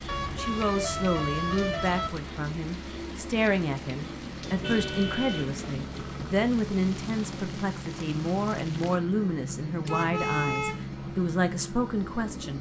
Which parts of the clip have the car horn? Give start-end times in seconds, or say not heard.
0.1-2.1, 4.5-6.3, 9.8-10.9.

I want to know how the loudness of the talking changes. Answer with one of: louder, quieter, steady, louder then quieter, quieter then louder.
steady.